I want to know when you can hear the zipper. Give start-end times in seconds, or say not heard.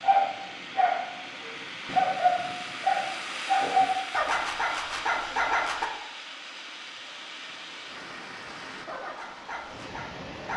not heard.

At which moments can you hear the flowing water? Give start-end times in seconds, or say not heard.
0.0-10.5.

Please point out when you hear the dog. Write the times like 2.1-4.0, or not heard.
0.0-5.9, 8.8-10.5.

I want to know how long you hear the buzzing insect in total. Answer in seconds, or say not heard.
not heard.